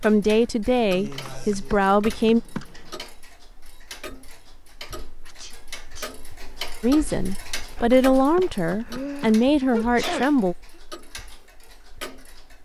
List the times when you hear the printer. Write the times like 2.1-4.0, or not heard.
not heard.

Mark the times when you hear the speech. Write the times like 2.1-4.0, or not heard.
0.0-2.4, 6.8-10.6.